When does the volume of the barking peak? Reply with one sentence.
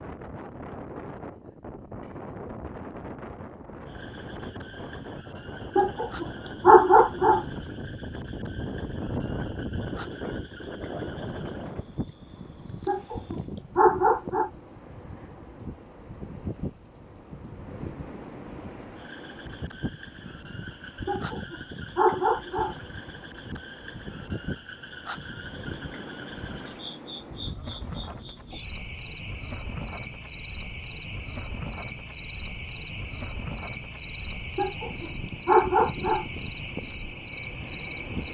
The volume of the barking peaks at 7 seconds.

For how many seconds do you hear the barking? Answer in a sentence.
You can hear the barking for 7 seconds altogether.